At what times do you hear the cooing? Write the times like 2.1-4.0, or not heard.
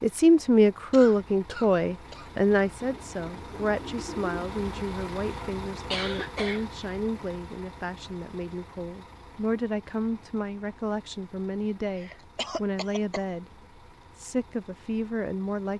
2.8-4.4.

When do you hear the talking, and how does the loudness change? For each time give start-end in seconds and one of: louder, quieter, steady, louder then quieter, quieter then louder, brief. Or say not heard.
0.0-13.4 quieter
14.2-15.7 brief.